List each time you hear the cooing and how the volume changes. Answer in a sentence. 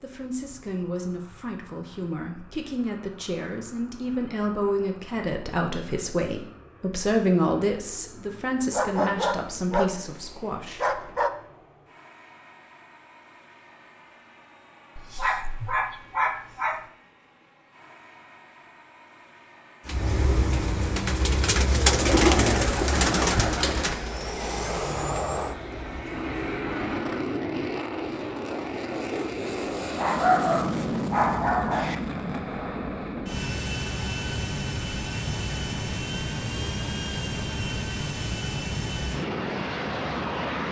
The cooing can be heard from 19.9 to 26.6 s, getting louder then quieter.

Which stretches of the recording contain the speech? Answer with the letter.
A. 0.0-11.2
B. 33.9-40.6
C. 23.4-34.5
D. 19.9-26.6
A.